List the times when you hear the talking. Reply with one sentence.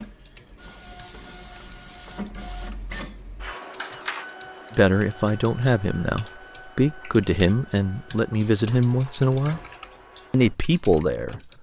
You can hear the talking from 4.7 to 9.6 s and from 10.3 to 11.4 s.